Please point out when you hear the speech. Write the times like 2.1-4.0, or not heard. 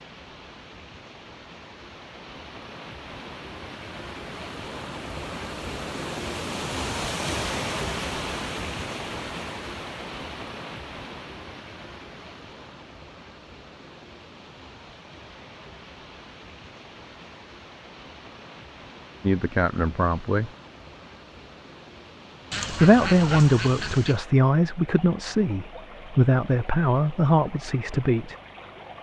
19.2-20.5, 22.7-28.4.